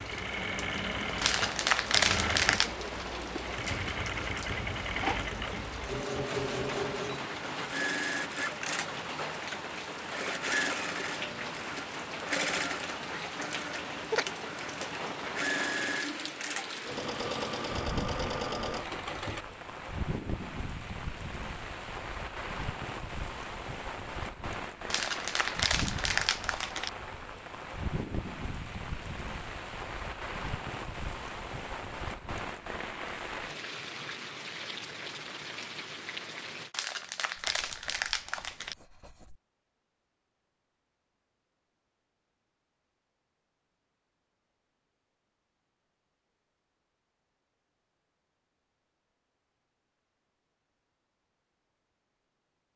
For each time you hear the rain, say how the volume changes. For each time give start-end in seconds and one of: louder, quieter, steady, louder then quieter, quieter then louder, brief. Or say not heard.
0.0-36.8 steady.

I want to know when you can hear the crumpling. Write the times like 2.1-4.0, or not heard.
1.2-2.7, 24.9-26.9, 36.7-38.8.